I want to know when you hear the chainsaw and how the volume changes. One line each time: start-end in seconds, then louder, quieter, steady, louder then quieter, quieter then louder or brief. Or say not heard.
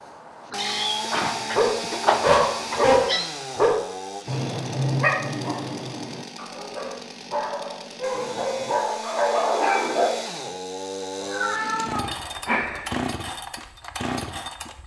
0.0-14.8 quieter then louder.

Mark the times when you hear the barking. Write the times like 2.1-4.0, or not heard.
1.5-10.1.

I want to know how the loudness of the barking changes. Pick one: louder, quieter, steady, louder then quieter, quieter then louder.
quieter then louder.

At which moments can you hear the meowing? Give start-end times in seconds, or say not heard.
0.5-3.2, 11.2-12.9.